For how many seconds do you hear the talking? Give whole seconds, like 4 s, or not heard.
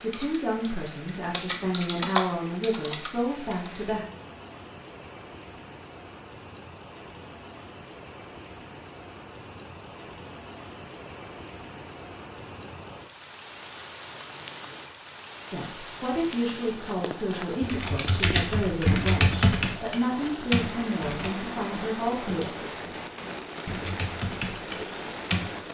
11 s.